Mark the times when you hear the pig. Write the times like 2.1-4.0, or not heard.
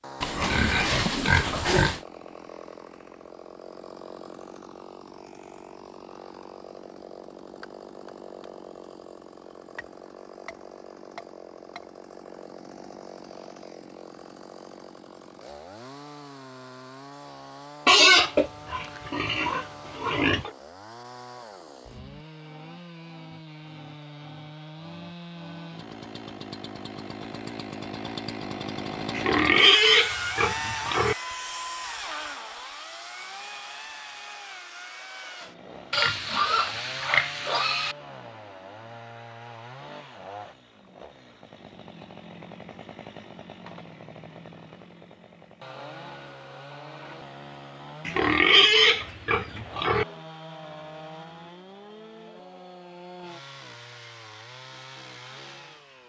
0.2-2.0, 17.9-20.5, 29.1-31.1, 35.9-38.0, 48.0-50.0.